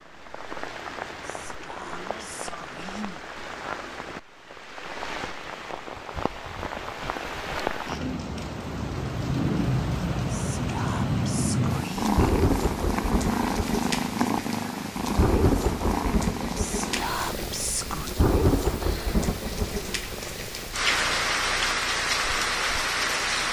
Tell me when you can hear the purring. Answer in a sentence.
The purring can be heard from 11.7 to 23.4 s.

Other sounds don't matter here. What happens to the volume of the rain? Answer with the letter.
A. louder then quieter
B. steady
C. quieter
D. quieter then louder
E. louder
E.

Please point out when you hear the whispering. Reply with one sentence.
You can hear the whispering from 1.2 to 3.2 s, from 10.2 to 12.3 s and from 16.6 to 18.1 s.